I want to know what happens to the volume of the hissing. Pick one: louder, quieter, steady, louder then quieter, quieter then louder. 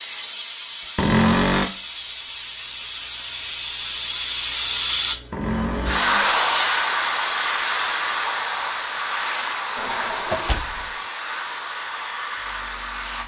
louder then quieter.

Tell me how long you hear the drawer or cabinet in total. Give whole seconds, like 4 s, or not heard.
3 s.